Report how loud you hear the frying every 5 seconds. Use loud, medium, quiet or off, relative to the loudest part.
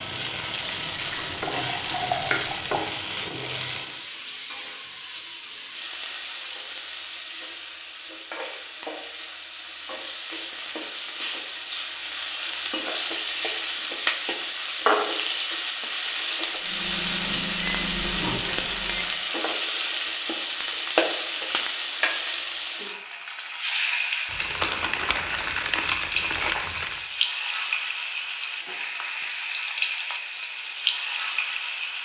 loud, medium, loud, loud, loud, loud, loud.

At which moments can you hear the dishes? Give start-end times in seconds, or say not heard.
not heard.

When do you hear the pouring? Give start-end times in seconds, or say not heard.
0.9-2.8.